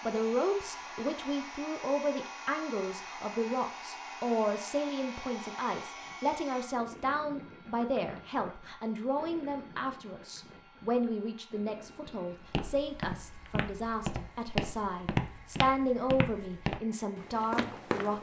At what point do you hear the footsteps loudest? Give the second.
15 s.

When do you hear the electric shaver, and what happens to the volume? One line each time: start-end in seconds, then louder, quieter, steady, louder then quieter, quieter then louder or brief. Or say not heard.
not heard.